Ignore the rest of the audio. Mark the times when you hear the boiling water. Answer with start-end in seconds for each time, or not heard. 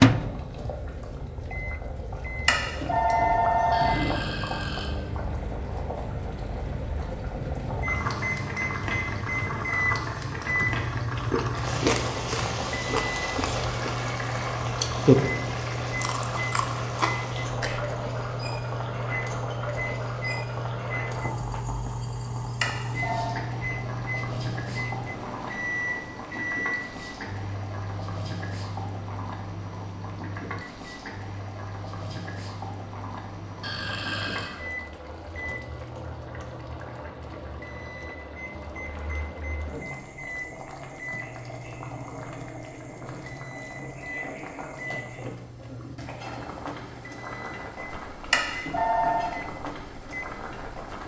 0.0-51.0.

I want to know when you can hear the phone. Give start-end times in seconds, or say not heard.
2.5-4.2, 22.6-23.4, 48.3-49.4.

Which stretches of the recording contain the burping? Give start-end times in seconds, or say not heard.
3.7-4.9, 33.6-34.5.